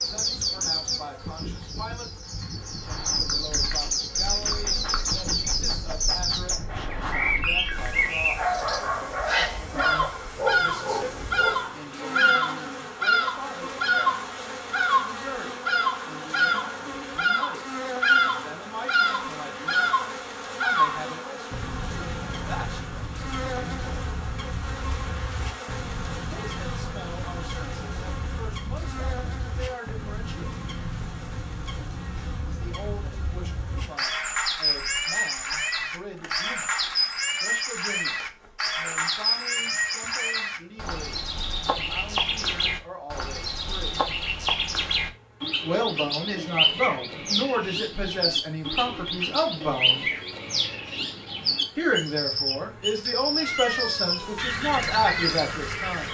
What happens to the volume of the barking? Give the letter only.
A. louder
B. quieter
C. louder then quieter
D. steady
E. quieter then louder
A.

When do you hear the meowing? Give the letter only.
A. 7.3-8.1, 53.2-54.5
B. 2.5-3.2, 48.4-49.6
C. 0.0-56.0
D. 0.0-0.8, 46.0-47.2
A.